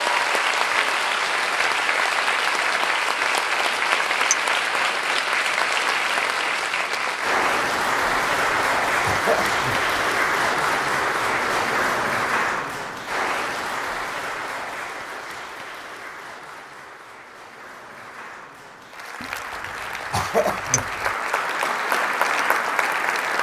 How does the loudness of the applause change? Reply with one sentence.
The volume of the applause goes down, then up.